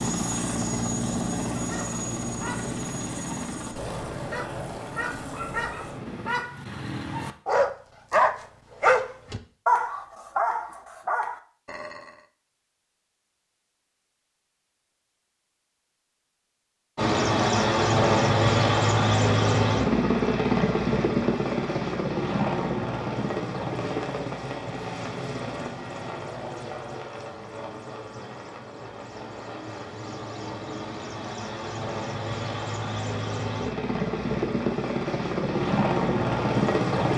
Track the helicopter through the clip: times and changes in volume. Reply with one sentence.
The helicopter can be heard from 0.0 to 6.4 s, getting quieter; and from 16.9 to 37.1 s, getting quieter then louder.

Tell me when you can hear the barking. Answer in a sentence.
The barking can be heard from 1.6 to 12.2 s.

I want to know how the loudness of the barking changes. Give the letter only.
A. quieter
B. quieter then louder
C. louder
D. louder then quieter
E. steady
D.